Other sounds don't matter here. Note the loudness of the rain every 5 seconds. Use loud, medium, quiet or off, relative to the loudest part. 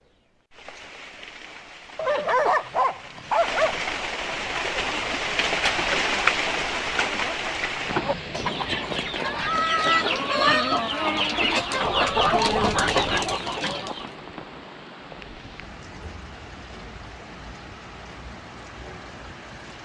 medium, loud, quiet, quiet.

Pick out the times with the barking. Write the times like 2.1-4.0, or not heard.
1.9-3.8, 11.8-13.3.